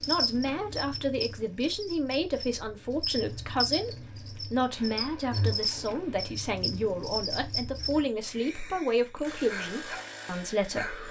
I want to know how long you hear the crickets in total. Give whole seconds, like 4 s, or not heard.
8 s.